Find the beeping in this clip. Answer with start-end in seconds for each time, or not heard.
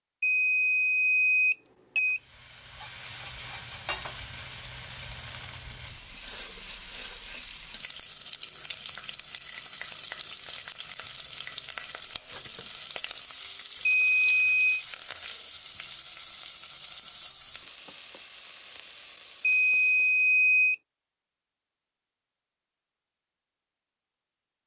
0.2-2.2, 13.8-14.8, 19.4-20.8.